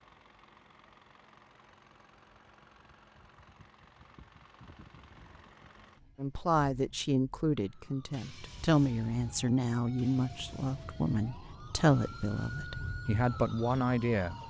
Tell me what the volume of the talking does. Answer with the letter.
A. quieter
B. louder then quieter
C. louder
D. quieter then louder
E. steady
E.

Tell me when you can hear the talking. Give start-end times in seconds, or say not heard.
6.2-14.4.